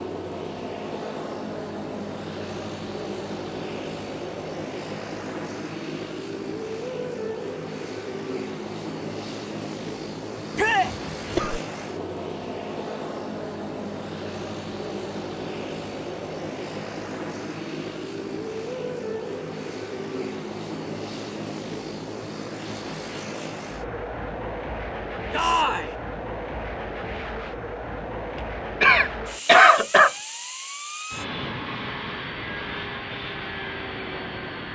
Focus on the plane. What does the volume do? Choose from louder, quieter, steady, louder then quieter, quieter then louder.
steady.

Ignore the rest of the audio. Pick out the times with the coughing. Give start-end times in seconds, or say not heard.
10.9-11.6, 28.8-30.1.